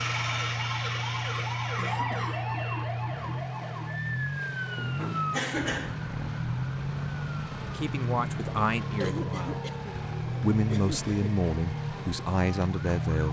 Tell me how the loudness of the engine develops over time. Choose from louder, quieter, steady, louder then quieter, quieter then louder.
steady.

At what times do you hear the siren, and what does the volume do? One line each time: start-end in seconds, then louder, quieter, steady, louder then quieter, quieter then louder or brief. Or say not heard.
0.0-13.2 quieter.